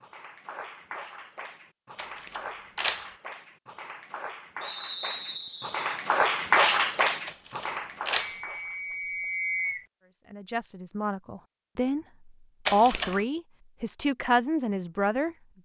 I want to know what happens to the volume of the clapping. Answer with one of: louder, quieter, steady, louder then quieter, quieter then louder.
louder then quieter.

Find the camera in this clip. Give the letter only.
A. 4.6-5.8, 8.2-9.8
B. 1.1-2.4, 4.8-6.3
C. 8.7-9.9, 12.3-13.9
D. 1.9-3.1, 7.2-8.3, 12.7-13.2
D.